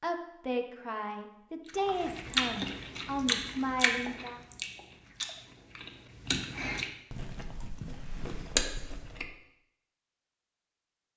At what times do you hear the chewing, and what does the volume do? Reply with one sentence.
You can hear the chewing from 1.9 to 9.3 s, getting quieter then louder.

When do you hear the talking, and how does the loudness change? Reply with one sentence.
The talking can be heard from 0.0 to 4.4 s, at a steady volume.